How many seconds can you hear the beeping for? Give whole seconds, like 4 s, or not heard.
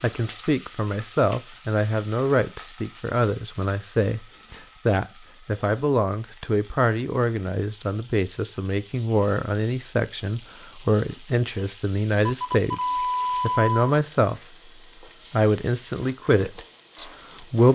2 s.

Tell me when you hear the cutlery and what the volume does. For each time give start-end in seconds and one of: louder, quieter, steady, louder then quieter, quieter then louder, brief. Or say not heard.
not heard.